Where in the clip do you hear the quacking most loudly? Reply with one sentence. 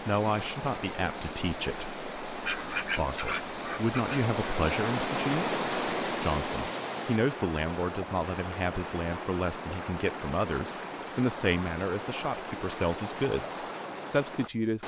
The loudest moment of the quacking is at 3 seconds.